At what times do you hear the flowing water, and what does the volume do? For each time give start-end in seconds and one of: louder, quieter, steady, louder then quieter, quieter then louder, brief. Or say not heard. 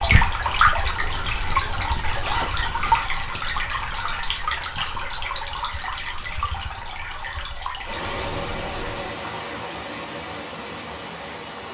0.0-11.6 quieter.